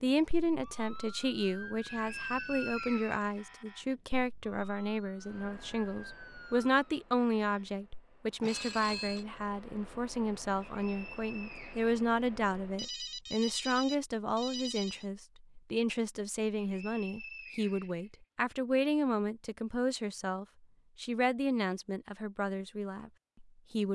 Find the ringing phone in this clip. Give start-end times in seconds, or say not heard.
8.4-9.2, 12.8-15.1.